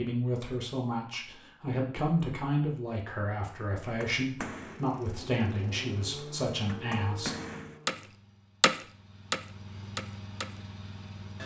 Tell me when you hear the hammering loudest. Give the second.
9 s.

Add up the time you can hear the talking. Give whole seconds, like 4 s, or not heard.
7 s.